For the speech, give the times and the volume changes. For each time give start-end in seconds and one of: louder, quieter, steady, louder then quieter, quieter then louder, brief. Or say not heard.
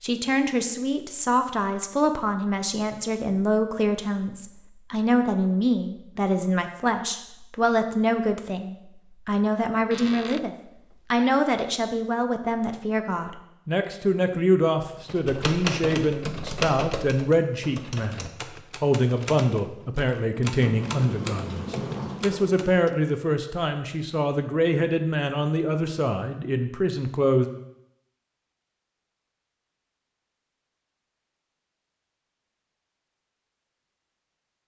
0.0-27.4 steady.